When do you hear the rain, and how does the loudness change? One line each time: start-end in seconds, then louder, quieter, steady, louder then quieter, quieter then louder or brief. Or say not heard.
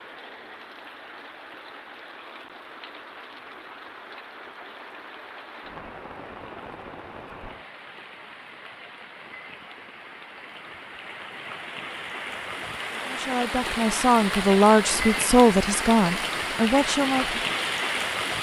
0.0-18.3 louder.